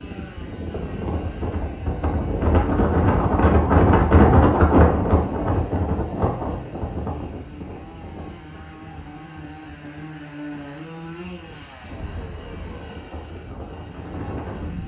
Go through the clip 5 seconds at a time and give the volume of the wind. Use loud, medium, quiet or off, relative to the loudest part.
loud, medium, quiet.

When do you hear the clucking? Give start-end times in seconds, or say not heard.
not heard.